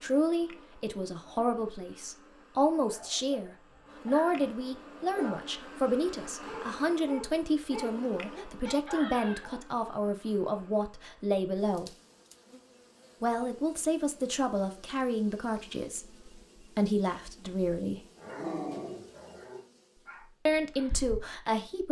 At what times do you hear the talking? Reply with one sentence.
You can hear the talking from 0.0 to 11.9 s, from 13.2 to 18.1 s and from 20.4 to 21.8 s.